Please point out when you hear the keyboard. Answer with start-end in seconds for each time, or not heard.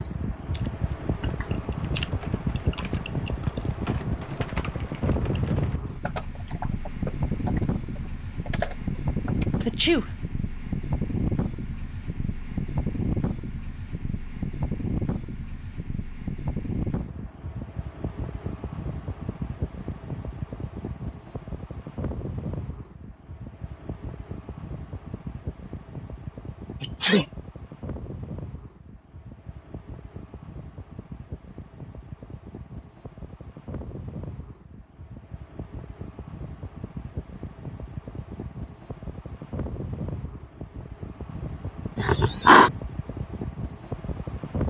0.5-9.8.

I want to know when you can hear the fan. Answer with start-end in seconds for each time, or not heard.
0.0-44.6.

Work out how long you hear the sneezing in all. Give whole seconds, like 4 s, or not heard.
2 s.